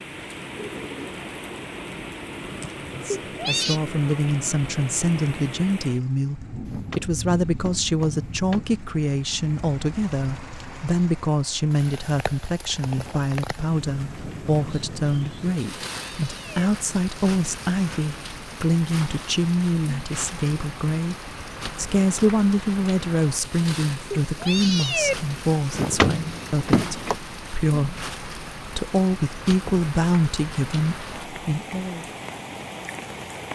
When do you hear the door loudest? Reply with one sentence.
The volume of the door peaks at 26 seconds.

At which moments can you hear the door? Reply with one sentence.
The door can be heard from 6.7 to 8.8 s and from 25.7 to 27.1 s.